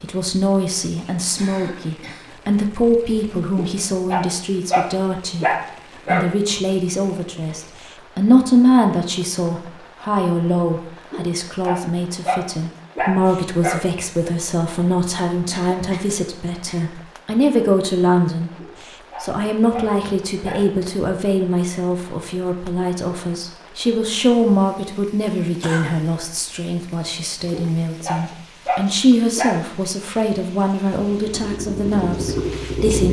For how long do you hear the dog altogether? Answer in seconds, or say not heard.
10 s.